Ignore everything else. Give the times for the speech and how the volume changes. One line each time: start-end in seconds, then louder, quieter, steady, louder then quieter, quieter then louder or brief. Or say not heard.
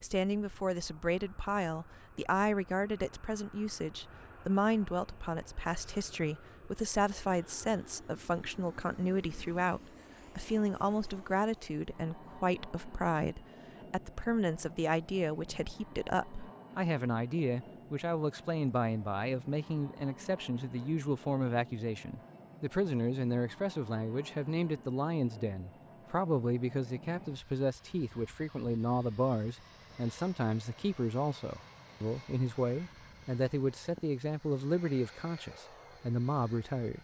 0.0-36.9 steady.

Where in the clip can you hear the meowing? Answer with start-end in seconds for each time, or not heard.
not heard.